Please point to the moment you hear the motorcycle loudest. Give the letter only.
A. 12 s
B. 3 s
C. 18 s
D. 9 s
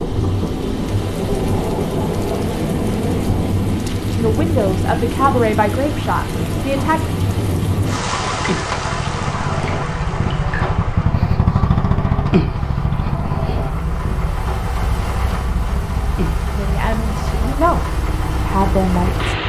A.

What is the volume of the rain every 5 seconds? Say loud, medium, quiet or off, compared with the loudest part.
loud, loud, medium, medium.